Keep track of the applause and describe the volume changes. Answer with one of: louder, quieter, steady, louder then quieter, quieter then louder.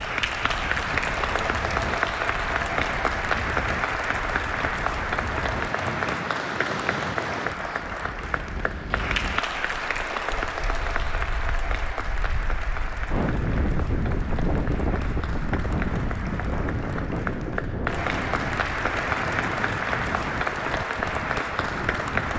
quieter then louder.